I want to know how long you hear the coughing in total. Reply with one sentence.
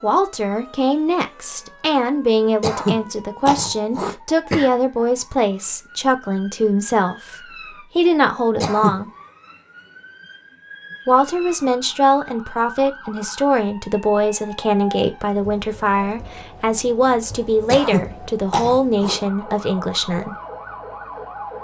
The coughing can be heard for 4 seconds in total.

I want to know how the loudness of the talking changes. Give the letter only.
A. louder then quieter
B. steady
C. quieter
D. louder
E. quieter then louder
B.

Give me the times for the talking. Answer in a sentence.
The talking can be heard from 0.0 to 9.1 s and from 11.1 to 20.4 s.